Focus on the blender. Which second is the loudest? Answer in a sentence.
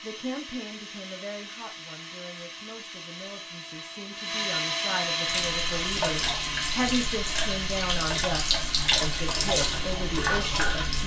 The volume of the blender peaks at 5 seconds.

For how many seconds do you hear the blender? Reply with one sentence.
The blender can be heard for 11 seconds in total.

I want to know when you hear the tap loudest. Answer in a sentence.
The volume of the tap peaks at 9 seconds.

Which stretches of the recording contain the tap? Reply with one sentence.
The tap can be heard from 5.2 to 11.0 s.